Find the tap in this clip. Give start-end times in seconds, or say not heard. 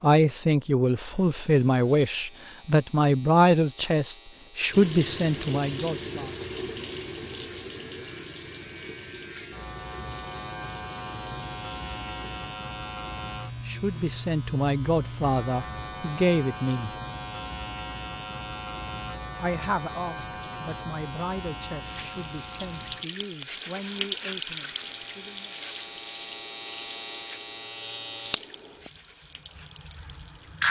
4.7-12.5, 21.8-30.6.